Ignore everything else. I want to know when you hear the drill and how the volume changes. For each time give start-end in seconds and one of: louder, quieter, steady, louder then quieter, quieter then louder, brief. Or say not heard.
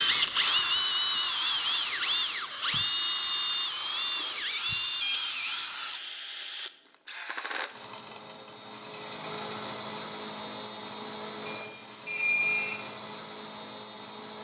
0.0-14.3 quieter.